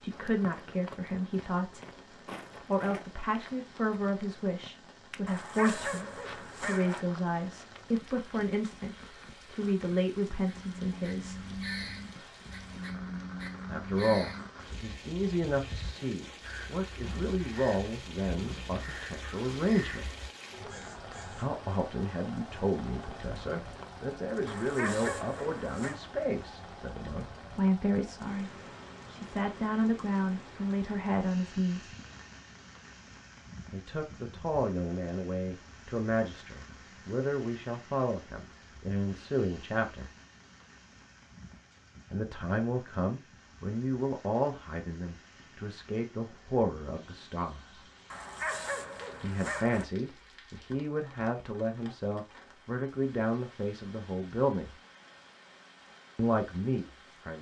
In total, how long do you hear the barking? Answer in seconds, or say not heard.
5 s.